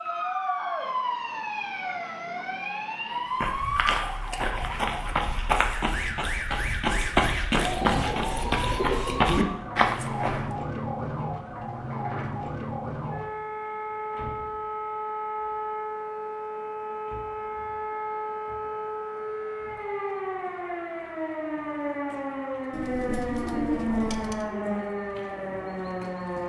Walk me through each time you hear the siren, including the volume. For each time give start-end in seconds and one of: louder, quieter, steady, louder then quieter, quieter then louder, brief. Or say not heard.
0.0-26.4 steady.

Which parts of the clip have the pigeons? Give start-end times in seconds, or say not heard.
7.5-9.4, 22.7-24.5.